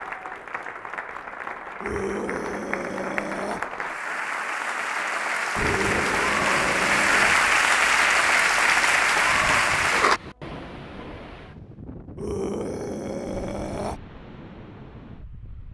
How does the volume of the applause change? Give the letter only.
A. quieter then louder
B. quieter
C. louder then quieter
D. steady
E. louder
E.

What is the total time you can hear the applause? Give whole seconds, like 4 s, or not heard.
10 s.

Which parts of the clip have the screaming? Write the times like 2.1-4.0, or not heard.
1.8-3.6, 5.5-7.3, 12.2-14.0.